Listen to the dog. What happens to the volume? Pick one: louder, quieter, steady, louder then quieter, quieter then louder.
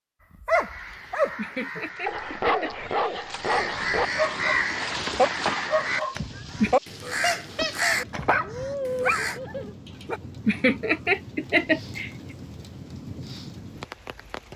steady.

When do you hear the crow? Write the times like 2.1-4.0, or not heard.
0.5-9.4.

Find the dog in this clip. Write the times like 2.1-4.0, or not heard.
0.4-10.2.